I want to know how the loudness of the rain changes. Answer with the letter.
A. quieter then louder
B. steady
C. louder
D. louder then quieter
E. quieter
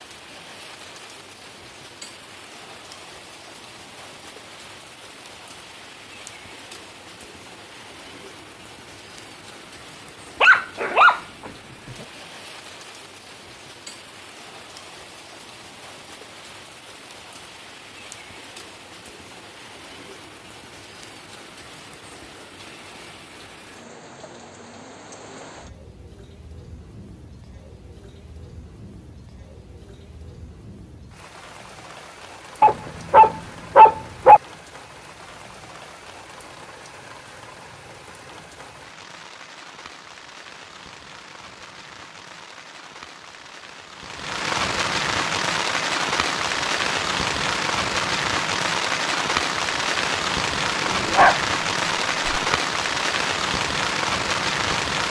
C.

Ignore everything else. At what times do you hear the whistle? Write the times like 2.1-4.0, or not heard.
not heard.